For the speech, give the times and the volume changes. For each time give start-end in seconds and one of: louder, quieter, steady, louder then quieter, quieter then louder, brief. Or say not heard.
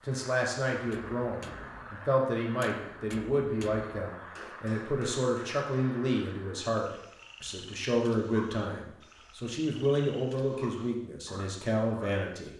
0.1-12.5 steady.